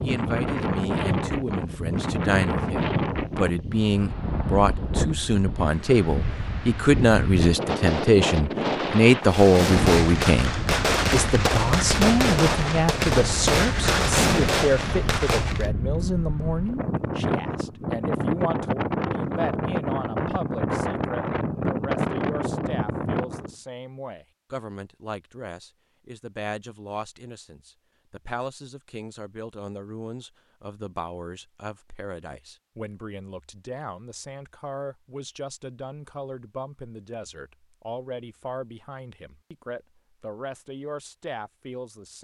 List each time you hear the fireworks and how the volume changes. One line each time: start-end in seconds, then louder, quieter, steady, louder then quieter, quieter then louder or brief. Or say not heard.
9.2-15.7 steady.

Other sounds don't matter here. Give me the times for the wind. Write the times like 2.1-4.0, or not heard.
0.0-23.6.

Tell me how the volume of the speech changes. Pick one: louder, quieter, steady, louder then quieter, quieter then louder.
quieter.